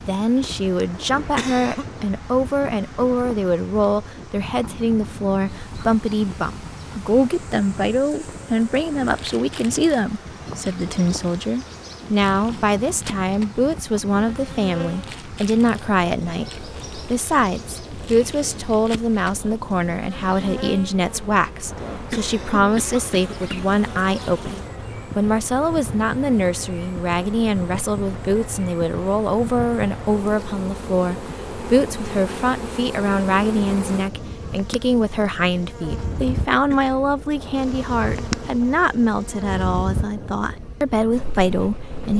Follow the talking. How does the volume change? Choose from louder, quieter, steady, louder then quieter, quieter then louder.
steady.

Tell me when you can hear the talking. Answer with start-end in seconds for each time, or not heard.
0.1-42.1.